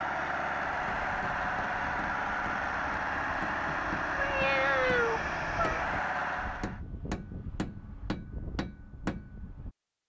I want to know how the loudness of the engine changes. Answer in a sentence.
The loudness of the engine stays about the same.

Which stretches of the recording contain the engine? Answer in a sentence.
The engine can be heard from 0.0 to 6.8 s.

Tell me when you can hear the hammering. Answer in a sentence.
The hammering can be heard from 0.7 to 9.7 s.